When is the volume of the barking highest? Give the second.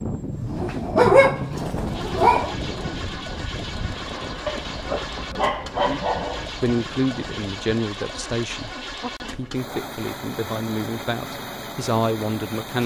1 s.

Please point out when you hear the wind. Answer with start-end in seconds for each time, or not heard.
0.0-7.7.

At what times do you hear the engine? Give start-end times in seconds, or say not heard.
0.0-12.8.